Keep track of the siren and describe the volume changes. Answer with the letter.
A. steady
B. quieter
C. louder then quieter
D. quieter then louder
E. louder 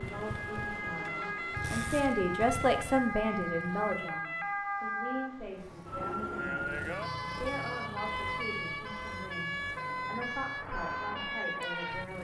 A.